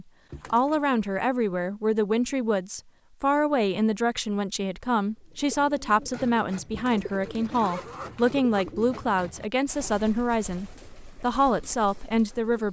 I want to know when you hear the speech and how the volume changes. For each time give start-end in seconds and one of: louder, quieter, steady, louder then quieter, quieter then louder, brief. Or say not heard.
0.0-12.6 steady.